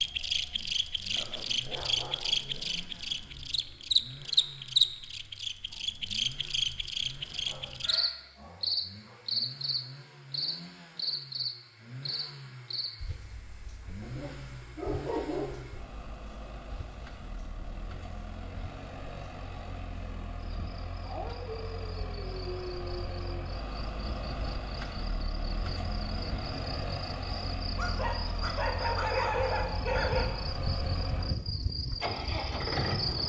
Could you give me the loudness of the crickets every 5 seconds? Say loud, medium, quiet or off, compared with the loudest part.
loud, loud, medium, quiet, quiet, quiet, medium.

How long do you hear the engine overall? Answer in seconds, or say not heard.
33 s.